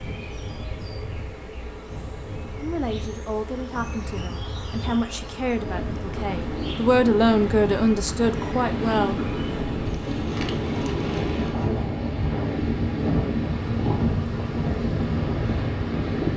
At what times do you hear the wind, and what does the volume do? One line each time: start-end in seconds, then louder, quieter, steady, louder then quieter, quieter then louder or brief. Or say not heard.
0.0-16.3 louder.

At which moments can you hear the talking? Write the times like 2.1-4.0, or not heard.
2.6-9.2.